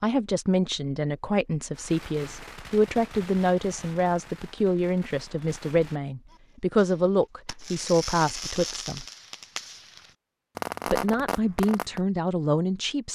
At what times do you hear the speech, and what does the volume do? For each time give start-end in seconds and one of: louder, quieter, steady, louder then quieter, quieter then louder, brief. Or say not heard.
0.0-9.1 steady
10.8-13.0 brief.